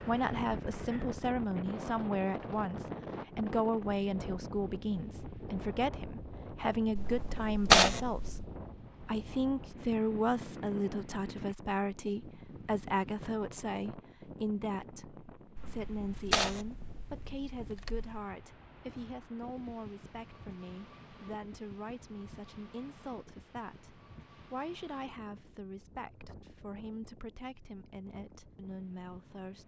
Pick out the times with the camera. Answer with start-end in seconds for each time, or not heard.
7.0-8.4, 15.6-18.2.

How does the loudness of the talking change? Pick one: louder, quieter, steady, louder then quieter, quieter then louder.
quieter.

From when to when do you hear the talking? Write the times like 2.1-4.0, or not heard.
0.1-29.6.